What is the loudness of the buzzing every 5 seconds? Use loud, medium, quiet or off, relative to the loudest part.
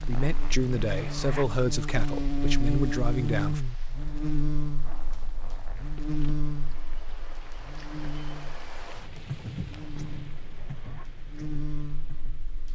loud, medium, medium.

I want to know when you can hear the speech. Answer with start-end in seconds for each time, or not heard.
0.1-3.6.